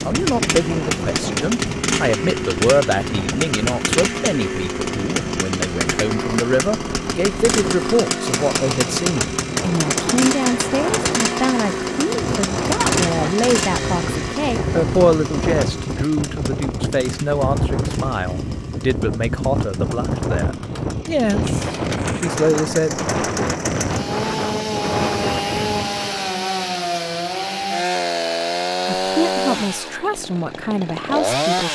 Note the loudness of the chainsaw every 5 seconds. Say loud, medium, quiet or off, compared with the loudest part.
loud, loud, loud, quiet, medium, loud, loud.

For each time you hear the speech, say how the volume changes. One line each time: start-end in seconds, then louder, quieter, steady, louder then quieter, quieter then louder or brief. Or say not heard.
0.0-23.0 steady
28.9-31.7 brief.